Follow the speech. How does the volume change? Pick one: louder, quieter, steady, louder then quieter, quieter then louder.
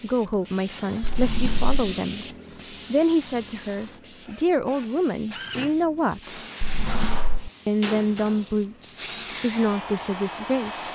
steady.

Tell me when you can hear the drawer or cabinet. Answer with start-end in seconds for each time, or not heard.
1.0-1.7, 6.6-7.5.